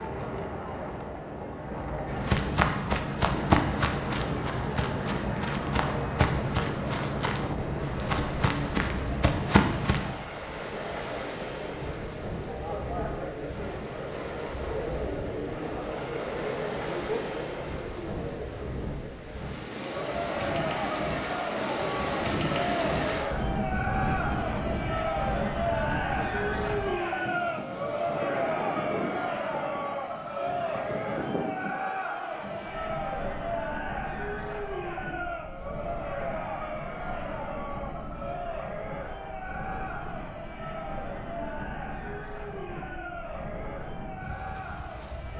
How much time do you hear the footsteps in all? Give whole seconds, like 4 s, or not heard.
8 s.